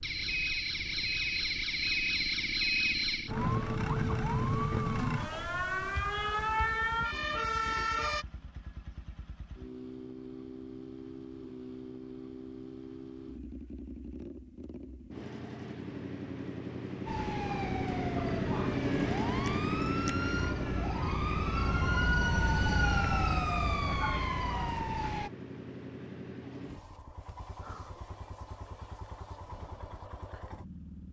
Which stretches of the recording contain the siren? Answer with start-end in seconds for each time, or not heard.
0.0-8.2, 17.1-25.3.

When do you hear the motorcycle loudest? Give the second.
19 s.